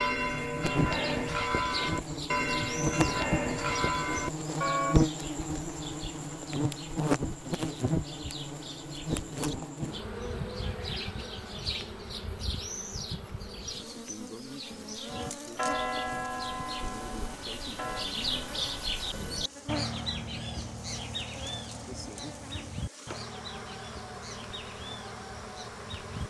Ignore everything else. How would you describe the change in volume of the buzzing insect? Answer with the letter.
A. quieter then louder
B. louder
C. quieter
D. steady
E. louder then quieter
C.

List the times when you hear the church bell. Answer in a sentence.
The church bell can be heard from 0.0 to 5.0 s and from 15.1 to 18.1 s.